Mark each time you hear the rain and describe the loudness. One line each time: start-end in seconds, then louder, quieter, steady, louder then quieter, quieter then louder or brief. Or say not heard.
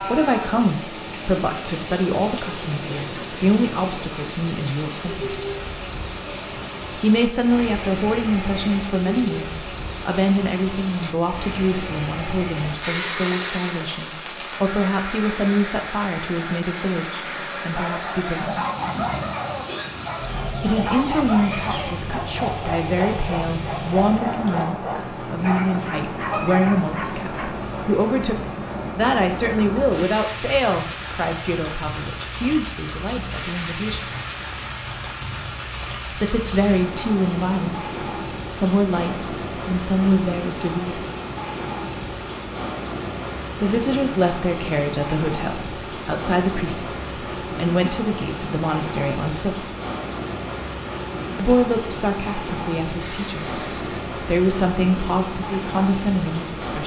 0.0-56.8 steady.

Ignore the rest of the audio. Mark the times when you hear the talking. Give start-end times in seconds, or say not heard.
0.0-5.4, 7.0-18.6, 20.6-34.0, 36.1-41.0, 43.6-49.6, 51.4-56.8.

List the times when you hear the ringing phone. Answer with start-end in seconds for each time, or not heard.
12.7-13.9, 21.4-21.9, 52.9-54.0.